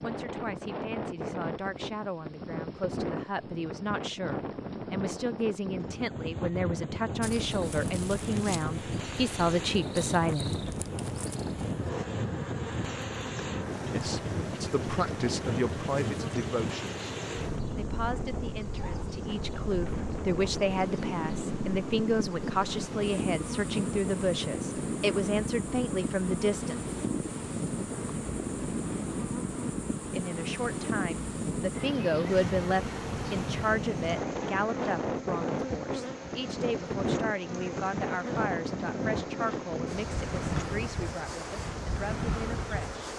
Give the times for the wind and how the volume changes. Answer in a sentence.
The wind can be heard from 0.0 to 43.1 s, at a steady volume.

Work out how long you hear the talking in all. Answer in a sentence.
The talking can be heard for 36 seconds in total.